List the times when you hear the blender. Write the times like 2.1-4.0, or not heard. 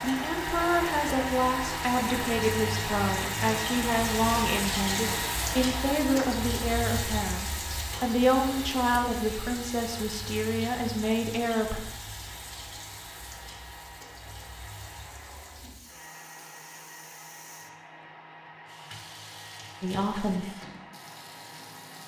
0.0-22.0.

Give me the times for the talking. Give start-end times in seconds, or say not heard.
0.0-11.8, 19.8-20.5.